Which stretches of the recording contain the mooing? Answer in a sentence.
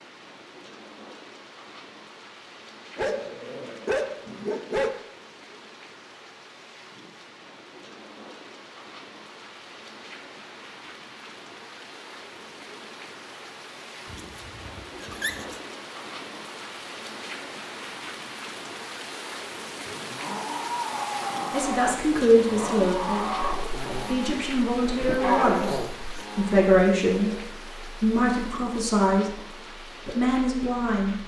You can hear the mooing from 19.9 to 27.4 s.